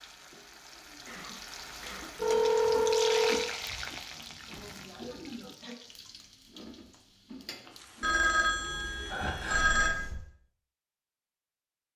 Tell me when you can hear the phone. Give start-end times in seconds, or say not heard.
2.1-3.5, 8.0-9.9.